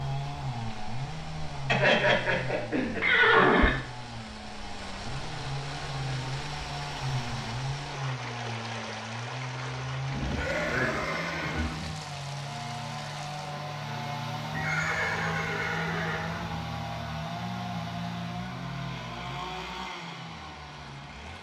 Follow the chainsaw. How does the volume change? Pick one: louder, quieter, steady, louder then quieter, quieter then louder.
steady.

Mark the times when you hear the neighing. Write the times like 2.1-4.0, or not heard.
1.6-3.7, 10.1-11.9, 14.5-16.6.